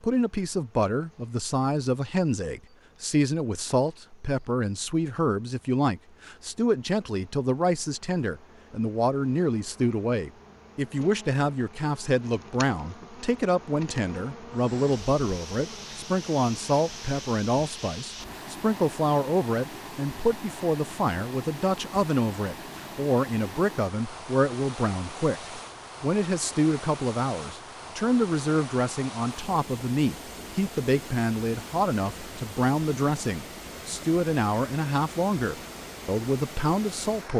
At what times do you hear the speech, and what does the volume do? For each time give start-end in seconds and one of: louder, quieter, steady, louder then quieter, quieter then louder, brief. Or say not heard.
0.0-37.3 steady.